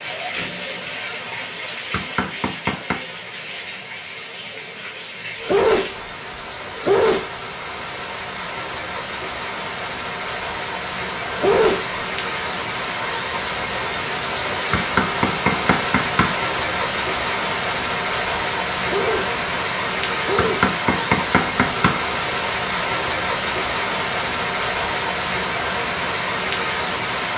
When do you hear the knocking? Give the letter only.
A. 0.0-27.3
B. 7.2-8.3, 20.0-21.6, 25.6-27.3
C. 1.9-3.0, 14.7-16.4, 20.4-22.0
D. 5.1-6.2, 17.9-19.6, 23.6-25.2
C.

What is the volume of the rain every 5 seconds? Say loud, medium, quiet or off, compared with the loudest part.
medium, medium, loud, loud, loud, loud.